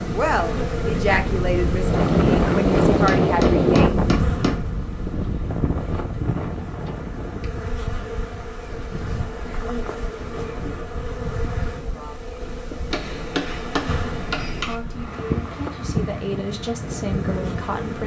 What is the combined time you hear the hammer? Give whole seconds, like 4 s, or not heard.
4 s.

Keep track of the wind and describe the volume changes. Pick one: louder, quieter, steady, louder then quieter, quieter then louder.
quieter then louder.